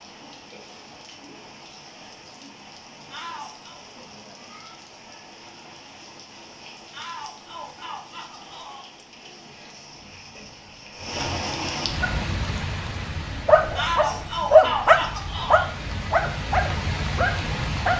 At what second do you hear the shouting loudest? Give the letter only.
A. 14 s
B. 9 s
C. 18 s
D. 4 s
A.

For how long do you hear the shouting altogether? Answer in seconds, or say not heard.
5 s.